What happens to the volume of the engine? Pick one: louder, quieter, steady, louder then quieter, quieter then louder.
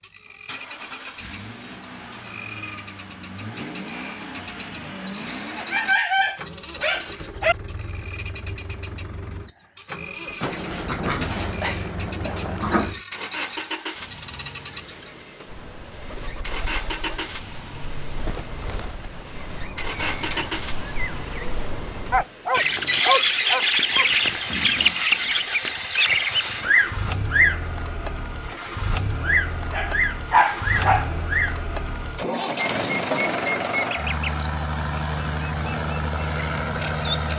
louder.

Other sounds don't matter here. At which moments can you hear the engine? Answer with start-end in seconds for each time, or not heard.
0.5-37.3.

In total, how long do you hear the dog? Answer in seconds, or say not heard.
8 s.